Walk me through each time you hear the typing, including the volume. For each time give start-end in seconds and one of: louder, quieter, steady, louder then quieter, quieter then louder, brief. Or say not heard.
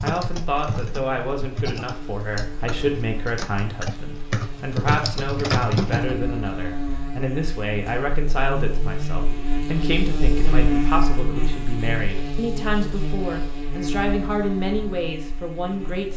0.0-6.2 louder.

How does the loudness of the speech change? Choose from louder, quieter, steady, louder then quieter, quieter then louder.
steady.